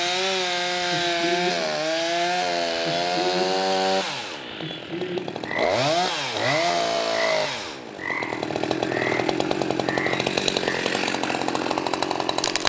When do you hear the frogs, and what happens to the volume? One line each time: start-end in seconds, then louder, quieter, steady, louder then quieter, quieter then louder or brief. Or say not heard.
0.0-10.8 steady.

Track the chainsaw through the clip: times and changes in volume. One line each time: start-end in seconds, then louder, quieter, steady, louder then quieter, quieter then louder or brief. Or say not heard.
0.0-12.6 steady.